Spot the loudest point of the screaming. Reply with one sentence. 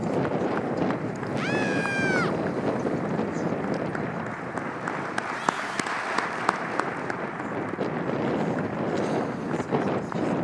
The volume of the screaming peaks at 2 seconds.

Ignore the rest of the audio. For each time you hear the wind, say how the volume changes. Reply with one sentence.
The wind can be heard from 0.0 to 10.3 s, getting quieter then louder.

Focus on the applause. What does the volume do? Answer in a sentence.
The volume of the applause goes up, then down.